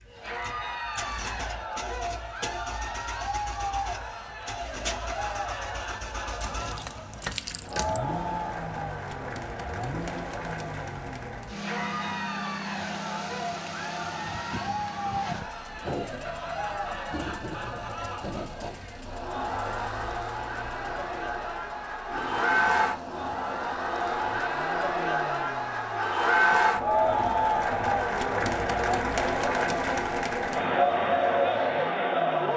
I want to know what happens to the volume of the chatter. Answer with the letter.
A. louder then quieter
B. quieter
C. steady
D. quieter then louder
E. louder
E.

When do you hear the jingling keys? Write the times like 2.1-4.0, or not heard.
6.4-8.0.